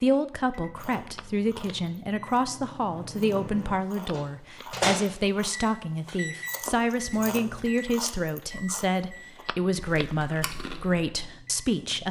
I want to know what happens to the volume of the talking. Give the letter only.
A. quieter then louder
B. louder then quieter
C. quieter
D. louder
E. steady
E.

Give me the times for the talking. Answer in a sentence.
You can hear the talking from 0.0 to 12.0 s.